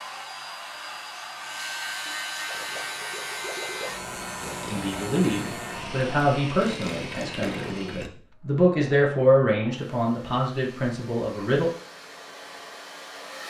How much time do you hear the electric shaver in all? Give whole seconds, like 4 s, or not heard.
8 s.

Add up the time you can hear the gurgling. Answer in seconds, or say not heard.
6 s.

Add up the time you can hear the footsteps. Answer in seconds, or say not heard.
not heard.